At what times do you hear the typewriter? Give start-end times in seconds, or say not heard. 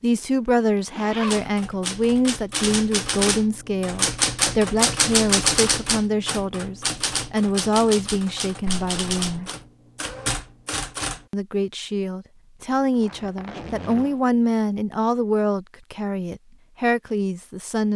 1.2-11.2.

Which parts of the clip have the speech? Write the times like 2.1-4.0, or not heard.
0.0-9.5, 11.3-17.9.